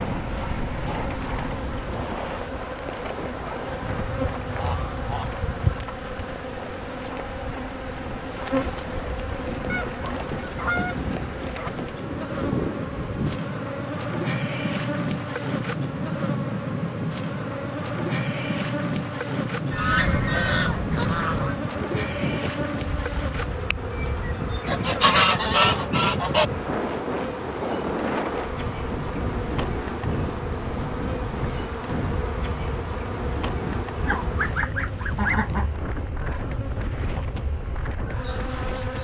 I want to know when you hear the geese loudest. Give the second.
25 s.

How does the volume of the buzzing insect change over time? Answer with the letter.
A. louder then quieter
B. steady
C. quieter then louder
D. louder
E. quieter
B.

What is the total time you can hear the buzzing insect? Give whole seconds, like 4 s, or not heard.
39 s.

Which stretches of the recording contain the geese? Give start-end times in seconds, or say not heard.
3.9-5.8, 9.7-11.7, 19.7-21.6, 24.6-26.4, 34.0-35.7.